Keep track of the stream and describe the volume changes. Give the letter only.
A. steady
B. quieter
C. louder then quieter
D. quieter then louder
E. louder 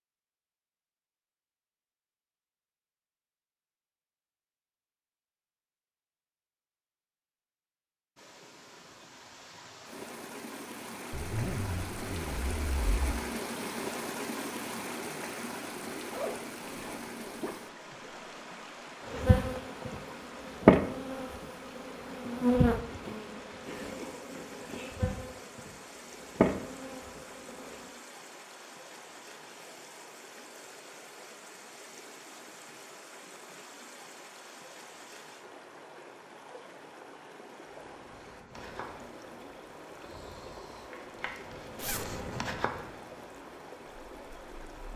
B.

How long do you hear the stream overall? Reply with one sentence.
The stream can be heard for 37 seconds in total.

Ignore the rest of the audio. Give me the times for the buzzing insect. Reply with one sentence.
The buzzing insect can be heard from 19.1 to 27.8 s and from 37.6 to 44.9 s.